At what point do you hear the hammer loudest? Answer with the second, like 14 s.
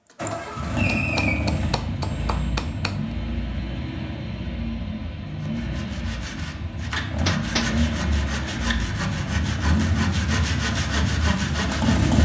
7 s.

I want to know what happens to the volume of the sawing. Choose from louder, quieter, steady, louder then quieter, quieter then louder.
louder.